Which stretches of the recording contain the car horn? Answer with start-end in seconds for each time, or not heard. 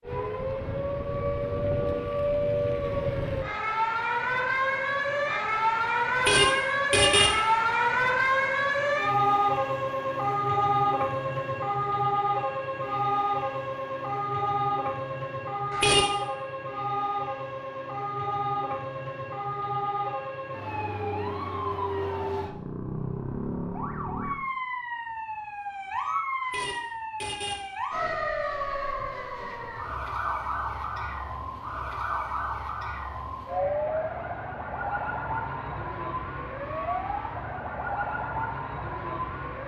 6.2-7.3, 15.7-16.1, 26.4-27.6.